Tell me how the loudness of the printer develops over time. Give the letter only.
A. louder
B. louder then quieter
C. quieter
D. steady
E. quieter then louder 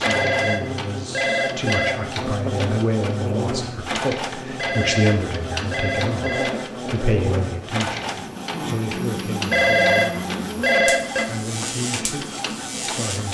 D.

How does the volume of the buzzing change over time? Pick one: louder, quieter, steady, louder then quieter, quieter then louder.
steady.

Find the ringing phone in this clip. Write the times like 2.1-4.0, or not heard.
0.0-1.9, 4.5-6.5, 9.5-11.2.